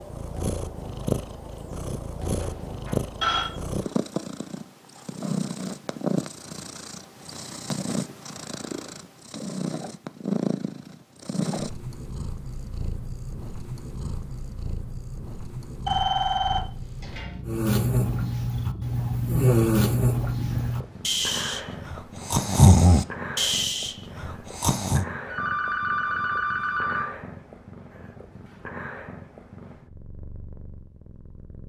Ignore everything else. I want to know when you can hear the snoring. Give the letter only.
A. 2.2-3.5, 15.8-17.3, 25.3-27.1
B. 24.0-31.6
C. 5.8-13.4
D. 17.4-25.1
D.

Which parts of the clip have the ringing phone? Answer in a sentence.
You can hear the ringing phone from 2.2 to 3.5 s, from 15.8 to 17.3 s and from 25.3 to 27.1 s.